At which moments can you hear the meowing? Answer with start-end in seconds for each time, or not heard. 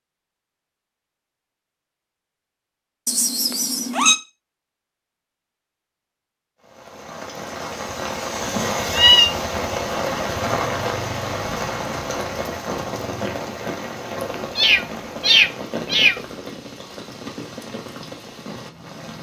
3.0-4.2, 8.6-9.3, 14.6-16.1.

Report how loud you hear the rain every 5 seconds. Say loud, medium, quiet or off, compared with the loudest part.
off, loud, loud, medium.